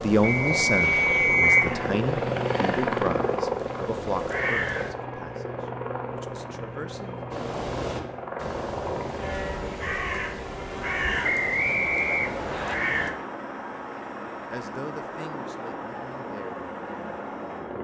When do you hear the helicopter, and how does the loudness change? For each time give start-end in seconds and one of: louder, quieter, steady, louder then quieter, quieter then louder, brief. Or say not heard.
0.0-17.7 quieter.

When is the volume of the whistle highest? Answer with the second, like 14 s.
1 s.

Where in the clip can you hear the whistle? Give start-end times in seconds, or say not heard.
0.2-1.6, 11.2-12.8.